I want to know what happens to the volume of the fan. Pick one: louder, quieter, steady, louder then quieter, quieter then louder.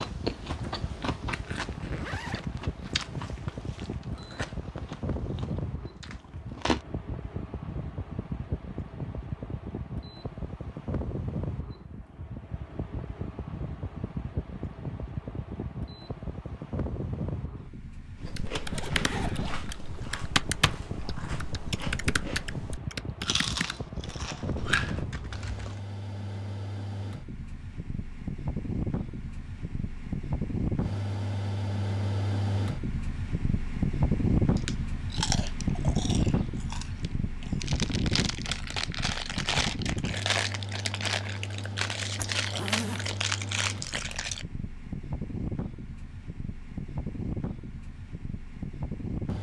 louder then quieter.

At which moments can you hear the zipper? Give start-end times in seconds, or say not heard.
1.6-4.0, 18.5-20.1, 42.1-43.1.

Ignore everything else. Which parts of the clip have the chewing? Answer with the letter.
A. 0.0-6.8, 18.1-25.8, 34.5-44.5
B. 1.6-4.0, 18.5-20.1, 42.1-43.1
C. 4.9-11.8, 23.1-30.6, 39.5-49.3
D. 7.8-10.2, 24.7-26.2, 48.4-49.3
A.